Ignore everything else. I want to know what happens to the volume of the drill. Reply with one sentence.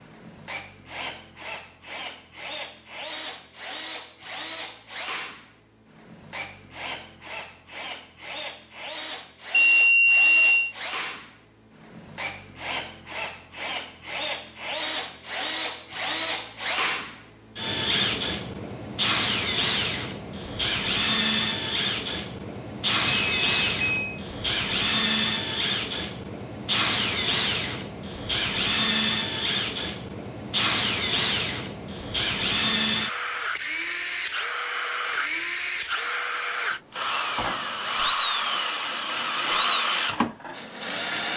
The loudness of the drill goes up.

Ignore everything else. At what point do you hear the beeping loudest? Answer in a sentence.
The loudest moment of the beeping is at 10 seconds.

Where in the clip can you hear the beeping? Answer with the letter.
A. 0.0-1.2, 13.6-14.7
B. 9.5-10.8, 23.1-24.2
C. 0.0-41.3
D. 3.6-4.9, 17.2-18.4
B.